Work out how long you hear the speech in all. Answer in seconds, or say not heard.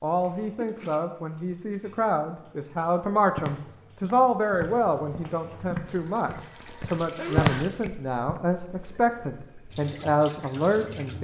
11 s.